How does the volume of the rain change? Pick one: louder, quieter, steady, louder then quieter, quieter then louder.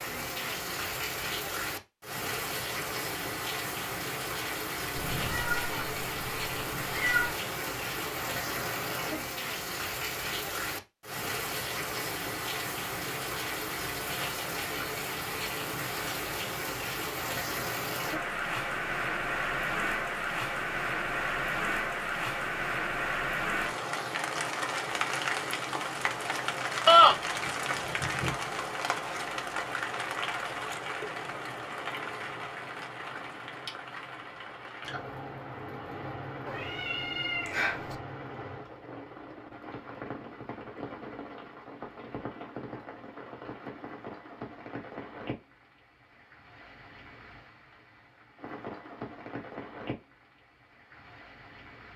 quieter.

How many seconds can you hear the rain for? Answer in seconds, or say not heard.
52 s.